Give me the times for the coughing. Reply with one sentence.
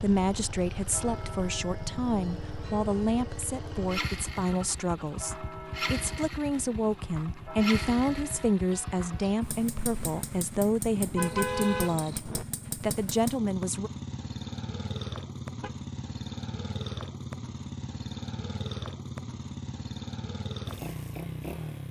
The coughing can't be heard in this clip.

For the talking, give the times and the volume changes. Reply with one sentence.
The talking can be heard from 0.0 to 13.9 s, at a steady volume.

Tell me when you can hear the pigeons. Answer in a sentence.
You can't hear the pigeons here.